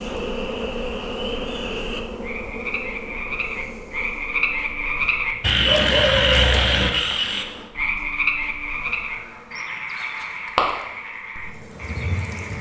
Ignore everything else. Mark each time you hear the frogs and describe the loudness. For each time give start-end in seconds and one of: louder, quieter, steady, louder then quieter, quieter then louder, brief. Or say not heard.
0.0-12.5 louder then quieter.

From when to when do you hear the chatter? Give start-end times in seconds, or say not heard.
not heard.